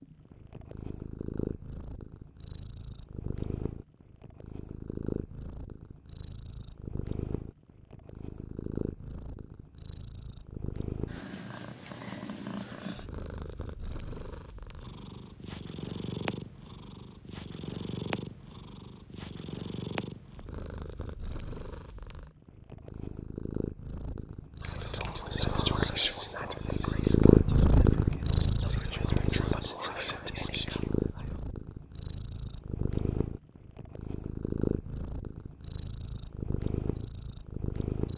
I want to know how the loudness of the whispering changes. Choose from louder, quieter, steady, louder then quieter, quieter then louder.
quieter then louder.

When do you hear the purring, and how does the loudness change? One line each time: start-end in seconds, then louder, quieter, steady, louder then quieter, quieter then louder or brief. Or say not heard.
0.0-38.1 louder then quieter.